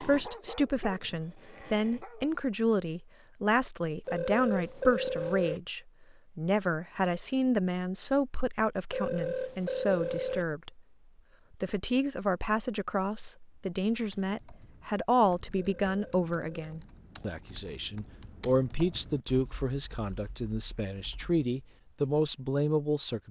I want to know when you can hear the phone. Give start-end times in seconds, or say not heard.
4.0-5.6, 8.9-10.4, 15.6-16.8.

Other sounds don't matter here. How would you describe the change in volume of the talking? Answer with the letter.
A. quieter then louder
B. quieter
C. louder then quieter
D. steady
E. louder
D.